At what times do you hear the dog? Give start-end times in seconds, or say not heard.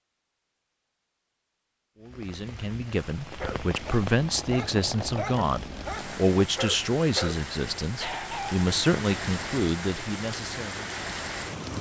3.0-8.7.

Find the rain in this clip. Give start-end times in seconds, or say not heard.
2.0-11.7.